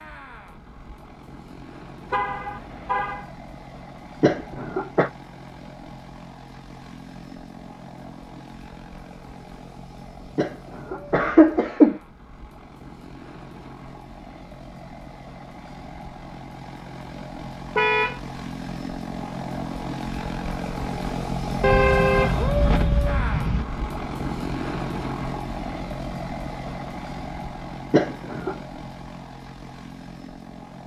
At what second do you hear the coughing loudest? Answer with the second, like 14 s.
12 s.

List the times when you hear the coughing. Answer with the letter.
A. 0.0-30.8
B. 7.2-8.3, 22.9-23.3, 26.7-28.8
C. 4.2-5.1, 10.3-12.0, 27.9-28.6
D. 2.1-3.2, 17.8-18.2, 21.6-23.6
C.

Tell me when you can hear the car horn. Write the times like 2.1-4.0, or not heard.
2.1-3.2, 17.8-18.2, 21.6-23.6.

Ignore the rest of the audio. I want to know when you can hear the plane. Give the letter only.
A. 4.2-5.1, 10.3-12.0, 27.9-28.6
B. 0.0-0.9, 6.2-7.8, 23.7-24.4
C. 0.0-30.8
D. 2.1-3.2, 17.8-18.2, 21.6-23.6
C.